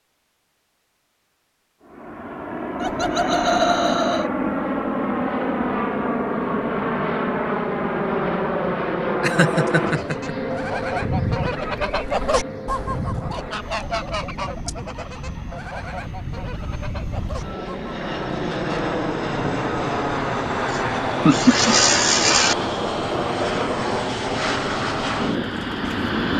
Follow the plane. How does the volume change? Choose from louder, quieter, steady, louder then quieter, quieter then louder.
quieter then louder.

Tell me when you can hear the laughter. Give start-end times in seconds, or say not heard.
2.8-4.3, 9.2-10.3, 20.6-22.6.